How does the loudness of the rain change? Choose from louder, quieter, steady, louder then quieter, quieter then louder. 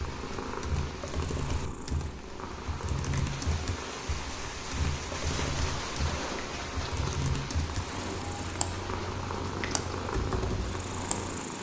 louder then quieter.